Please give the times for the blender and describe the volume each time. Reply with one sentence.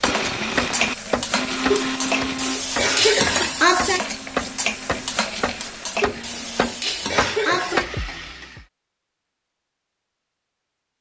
You can hear the blender from 0.0 to 6.8 s, getting quieter.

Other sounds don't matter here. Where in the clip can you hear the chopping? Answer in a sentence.
You can hear the chopping from 0.0 to 7.9 s.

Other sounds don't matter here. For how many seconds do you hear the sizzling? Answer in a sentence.
The sizzling can be heard for 9 seconds in total.